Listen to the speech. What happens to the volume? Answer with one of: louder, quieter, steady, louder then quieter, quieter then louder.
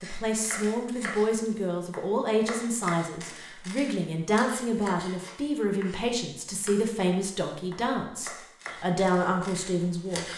steady.